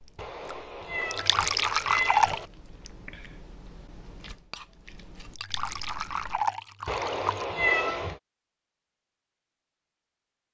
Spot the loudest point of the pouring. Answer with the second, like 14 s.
2 s.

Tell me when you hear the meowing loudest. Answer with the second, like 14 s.
8 s.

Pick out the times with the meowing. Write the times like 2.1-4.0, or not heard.
0.1-2.5, 6.8-8.2.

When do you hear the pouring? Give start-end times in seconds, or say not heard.
1.1-2.4, 5.3-7.5.